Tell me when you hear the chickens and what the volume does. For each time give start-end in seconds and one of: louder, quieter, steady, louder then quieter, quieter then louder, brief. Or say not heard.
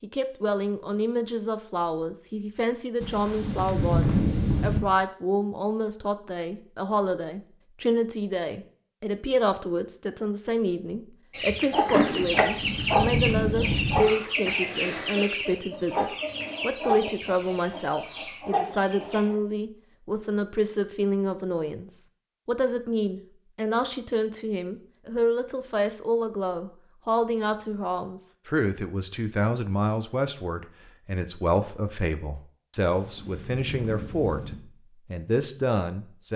11.3-19.4 quieter.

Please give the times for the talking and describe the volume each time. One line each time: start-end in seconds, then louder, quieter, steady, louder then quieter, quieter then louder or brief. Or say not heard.
0.0-36.3 steady.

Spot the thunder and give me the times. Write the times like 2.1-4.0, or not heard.
3.0-4.8, 12.4-14.0, 32.8-34.5.